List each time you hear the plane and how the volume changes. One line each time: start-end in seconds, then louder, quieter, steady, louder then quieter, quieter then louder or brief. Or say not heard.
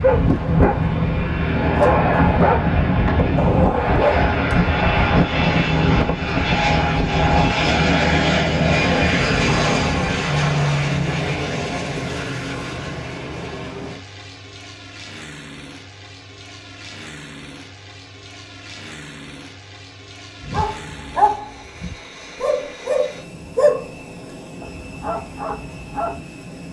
0.0-26.6 quieter.